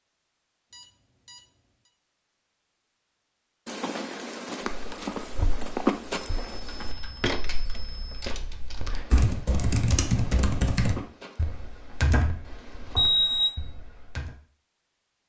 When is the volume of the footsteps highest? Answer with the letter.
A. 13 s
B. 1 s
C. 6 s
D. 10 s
C.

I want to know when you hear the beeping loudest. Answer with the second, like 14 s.
13 s.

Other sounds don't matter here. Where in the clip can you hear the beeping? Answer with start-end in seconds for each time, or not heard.
0.7-1.9, 6.2-8.3, 12.9-13.6.